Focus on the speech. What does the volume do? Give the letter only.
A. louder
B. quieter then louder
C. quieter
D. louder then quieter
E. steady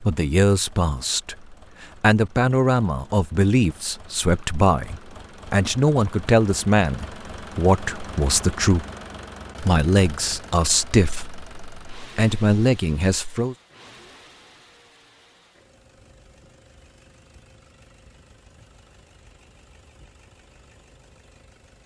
E.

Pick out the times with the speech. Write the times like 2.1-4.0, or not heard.
0.0-8.8, 9.6-13.6.